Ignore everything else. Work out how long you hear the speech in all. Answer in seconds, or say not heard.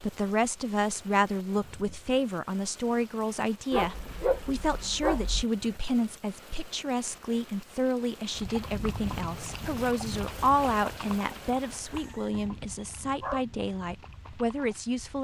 15 s.